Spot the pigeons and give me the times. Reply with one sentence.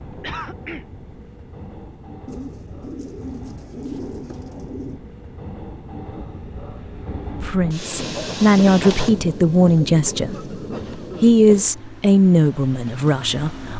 The pigeons can be heard from 2.2 to 5.0 s.